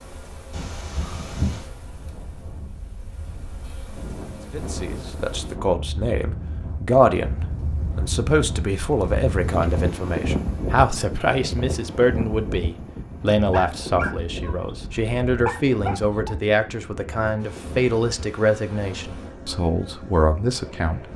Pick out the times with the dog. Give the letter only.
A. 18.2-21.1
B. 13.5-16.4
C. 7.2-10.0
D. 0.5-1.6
B.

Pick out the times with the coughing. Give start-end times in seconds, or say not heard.
0.5-1.6.